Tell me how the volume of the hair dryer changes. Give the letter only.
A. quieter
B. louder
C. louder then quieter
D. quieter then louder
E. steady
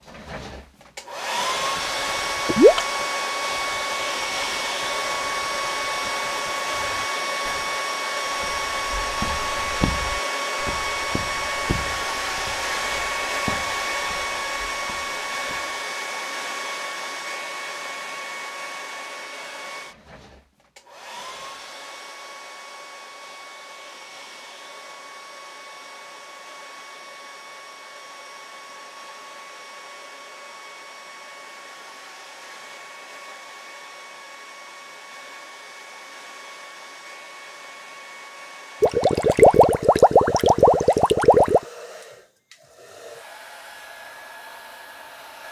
A.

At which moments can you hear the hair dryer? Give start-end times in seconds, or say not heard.
0.1-45.4.